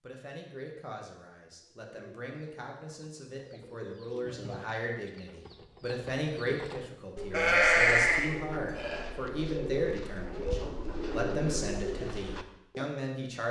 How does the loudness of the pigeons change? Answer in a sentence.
The volume of the pigeons goes up.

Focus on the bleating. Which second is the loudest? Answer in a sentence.
The volume of the bleating peaks at 8 seconds.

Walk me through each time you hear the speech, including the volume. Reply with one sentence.
The speech can be heard from 0.0 to 13.4 s, getting louder.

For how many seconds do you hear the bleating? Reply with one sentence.
You can hear the bleating for 2 seconds altogether.